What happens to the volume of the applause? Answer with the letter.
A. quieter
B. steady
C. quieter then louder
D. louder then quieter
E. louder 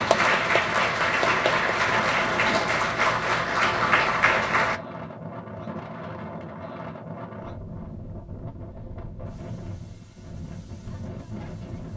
B.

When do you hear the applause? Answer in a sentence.
You can hear the applause from 0.0 to 4.8 s.